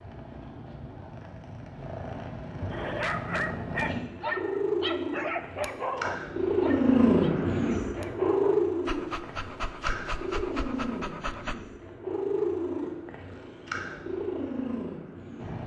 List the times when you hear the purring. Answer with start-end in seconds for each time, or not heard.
0.0-15.6.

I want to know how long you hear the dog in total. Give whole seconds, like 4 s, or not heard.
9 s.